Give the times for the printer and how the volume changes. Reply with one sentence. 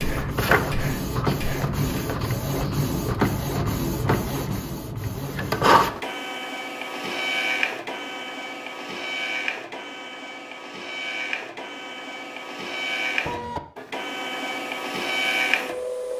You can hear the printer from 0.0 to 16.1 s, getting quieter then louder.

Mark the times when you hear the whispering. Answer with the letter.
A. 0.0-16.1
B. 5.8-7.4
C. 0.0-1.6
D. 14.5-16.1
C.